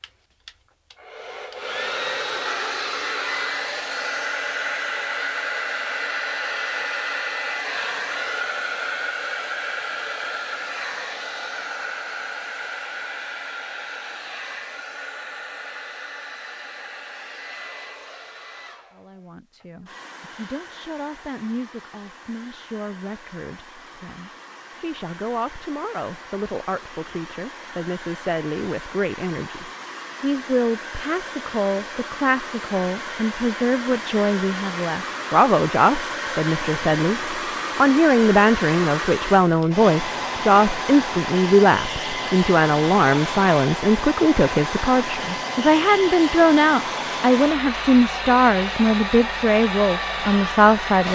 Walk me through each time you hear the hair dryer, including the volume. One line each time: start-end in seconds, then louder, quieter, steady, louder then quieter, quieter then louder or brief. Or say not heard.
0.0-51.1 quieter then louder.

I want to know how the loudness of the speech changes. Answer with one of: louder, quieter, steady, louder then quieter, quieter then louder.
louder.